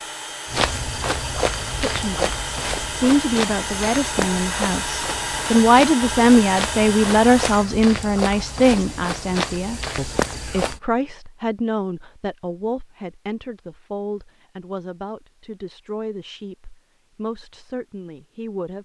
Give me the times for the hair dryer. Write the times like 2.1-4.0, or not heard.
0.0-7.7.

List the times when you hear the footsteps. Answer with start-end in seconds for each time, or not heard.
0.5-10.8.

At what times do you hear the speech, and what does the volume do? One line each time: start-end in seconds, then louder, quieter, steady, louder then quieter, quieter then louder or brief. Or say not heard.
1.6-18.8 louder then quieter.